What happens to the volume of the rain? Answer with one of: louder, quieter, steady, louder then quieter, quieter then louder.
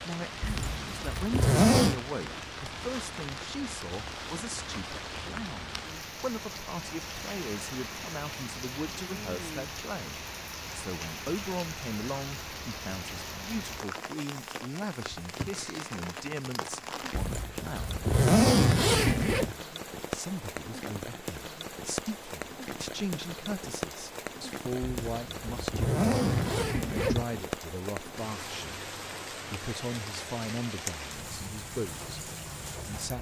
steady.